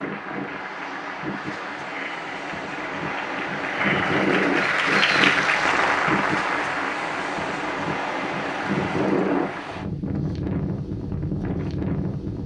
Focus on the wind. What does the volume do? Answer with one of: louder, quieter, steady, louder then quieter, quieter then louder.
louder.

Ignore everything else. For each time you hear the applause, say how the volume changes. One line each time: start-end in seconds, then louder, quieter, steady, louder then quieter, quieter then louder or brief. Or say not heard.
0.0-9.7 louder then quieter.